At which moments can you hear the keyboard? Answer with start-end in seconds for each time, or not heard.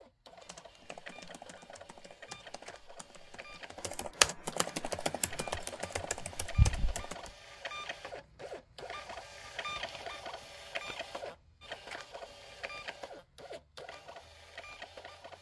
0.3-7.3.